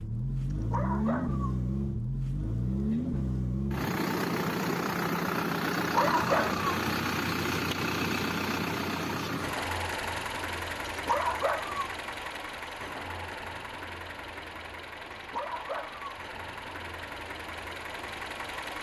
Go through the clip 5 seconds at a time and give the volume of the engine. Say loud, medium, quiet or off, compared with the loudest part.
loud, loud, medium, medium.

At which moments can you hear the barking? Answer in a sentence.
You can hear the barking from 0.5 to 1.5 s, from 5.8 to 6.7 s, from 10.8 to 11.8 s and from 15.1 to 16.1 s.